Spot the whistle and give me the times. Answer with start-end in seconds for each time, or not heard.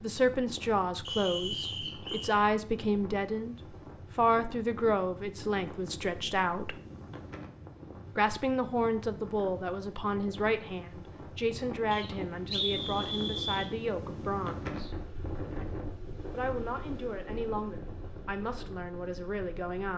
1.1-2.4, 11.9-13.7.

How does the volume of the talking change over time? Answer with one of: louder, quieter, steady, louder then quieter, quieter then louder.
quieter.